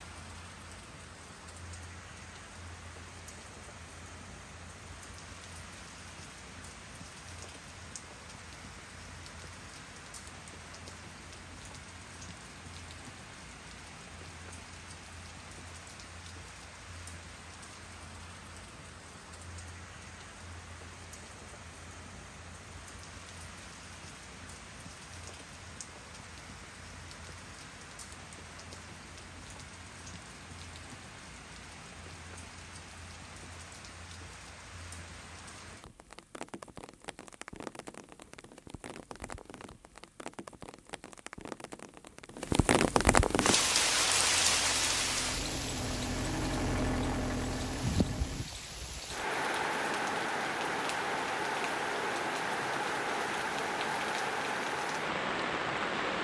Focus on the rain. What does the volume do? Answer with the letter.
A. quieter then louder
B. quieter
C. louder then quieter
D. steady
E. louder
E.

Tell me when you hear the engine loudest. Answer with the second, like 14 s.
47 s.